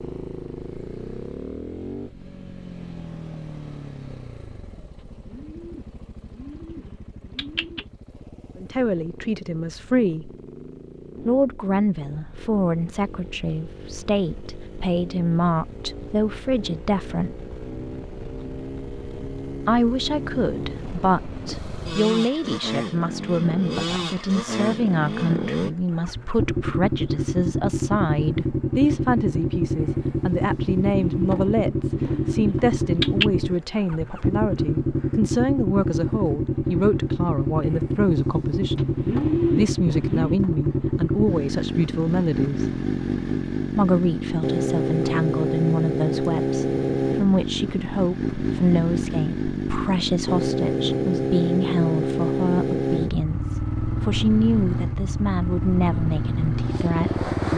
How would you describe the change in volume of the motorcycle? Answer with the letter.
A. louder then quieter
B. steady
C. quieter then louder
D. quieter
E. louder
E.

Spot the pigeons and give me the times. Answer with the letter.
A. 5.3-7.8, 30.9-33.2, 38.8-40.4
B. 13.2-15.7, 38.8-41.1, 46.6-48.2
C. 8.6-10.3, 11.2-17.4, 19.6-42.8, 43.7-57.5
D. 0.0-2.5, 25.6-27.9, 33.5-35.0
A.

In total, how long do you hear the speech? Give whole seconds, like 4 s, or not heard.
45 s.